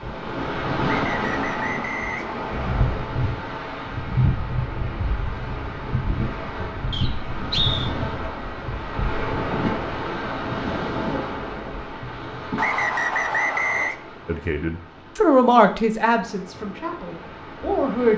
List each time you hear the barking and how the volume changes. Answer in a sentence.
The barking can't be heard in this clip.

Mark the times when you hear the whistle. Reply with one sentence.
The whistle can be heard from 0.8 to 2.9 s, from 6.9 to 7.9 s and from 12.6 to 13.9 s.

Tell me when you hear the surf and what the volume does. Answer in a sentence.
The surf can be heard from 0.0 to 18.1 s, getting quieter.